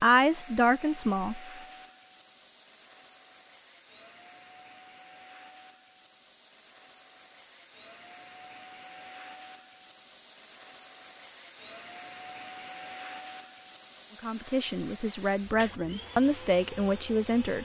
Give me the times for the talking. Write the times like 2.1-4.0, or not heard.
0.0-1.4, 14.2-17.6.